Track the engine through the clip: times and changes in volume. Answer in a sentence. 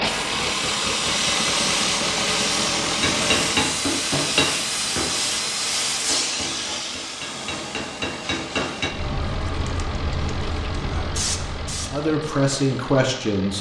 You can hear the engine from 0.0 to 13.5 s, getting quieter.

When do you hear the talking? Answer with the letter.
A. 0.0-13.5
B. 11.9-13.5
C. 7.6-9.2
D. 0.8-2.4
B.